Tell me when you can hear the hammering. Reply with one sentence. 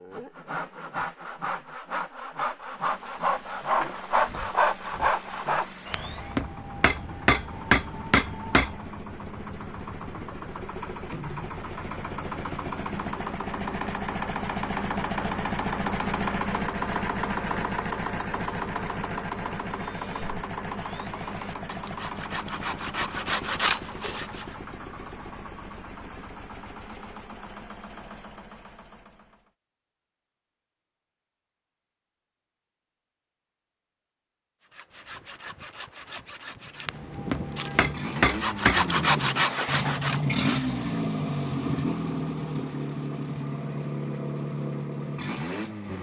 You can hear the hammering from 5.9 to 8.8 s and from 36.9 to 39.0 s.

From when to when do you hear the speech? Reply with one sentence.
You can't hear the speech here.